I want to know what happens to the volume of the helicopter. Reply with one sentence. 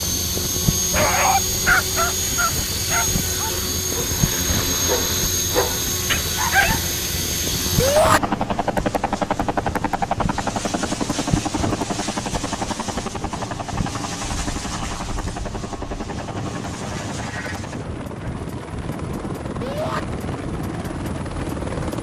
The volume of the helicopter goes down.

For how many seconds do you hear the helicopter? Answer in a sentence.
You can hear the helicopter for 22 seconds altogether.